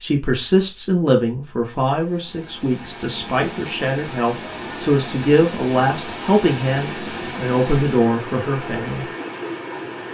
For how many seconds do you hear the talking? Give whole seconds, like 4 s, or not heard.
9 s.